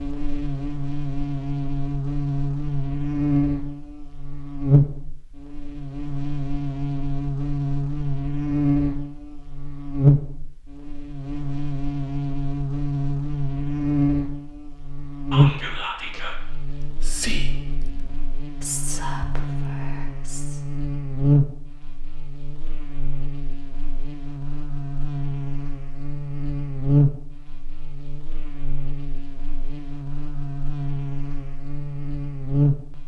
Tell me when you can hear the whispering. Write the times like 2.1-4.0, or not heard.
15.3-20.6.